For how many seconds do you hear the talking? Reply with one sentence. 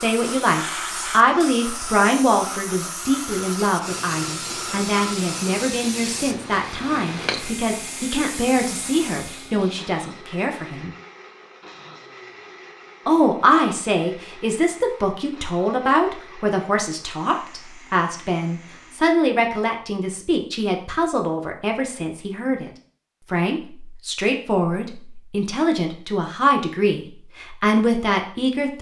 The talking can be heard for 26 seconds in total.